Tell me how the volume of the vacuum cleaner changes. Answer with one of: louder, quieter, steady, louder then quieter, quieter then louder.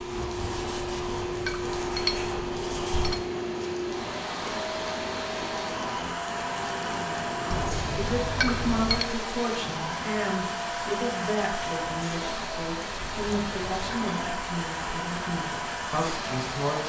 steady.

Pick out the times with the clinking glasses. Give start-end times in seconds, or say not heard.
0.6-3.2, 7.5-9.1, 13.0-13.8.